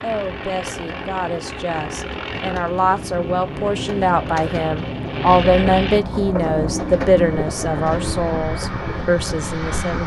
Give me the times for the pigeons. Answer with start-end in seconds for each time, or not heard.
0.0-10.0.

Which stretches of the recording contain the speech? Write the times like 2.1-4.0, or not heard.
0.0-10.0.